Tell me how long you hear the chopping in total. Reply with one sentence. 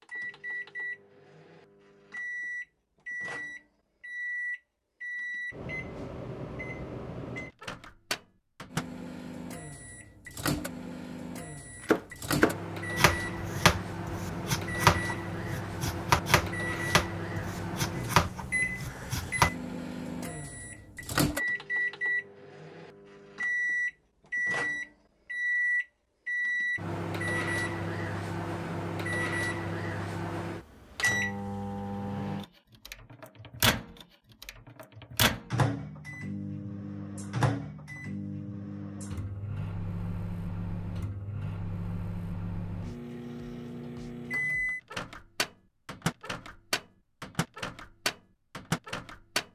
You can hear the chopping for 8 seconds altogether.